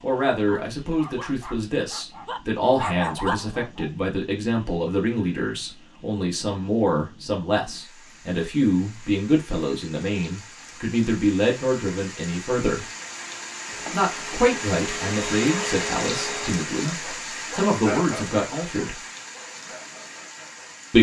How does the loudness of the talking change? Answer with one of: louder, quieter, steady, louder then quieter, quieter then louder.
steady.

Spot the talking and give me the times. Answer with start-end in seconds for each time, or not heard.
0.0-12.8, 13.9-19.0.